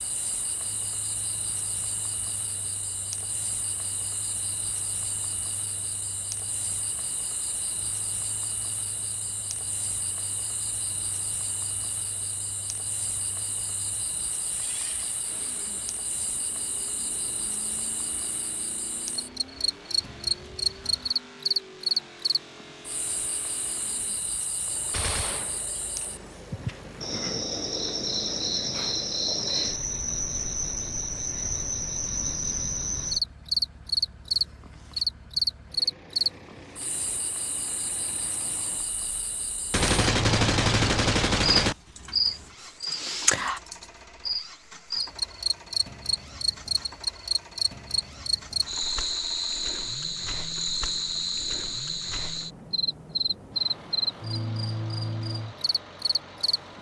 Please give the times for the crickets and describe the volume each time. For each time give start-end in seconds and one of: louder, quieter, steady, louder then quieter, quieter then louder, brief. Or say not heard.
0.0-56.7 louder.